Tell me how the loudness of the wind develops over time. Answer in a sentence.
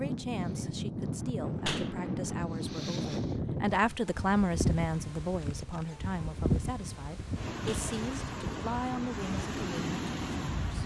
The loudness of the wind stays about the same.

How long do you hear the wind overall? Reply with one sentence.
You can hear the wind for 11 seconds altogether.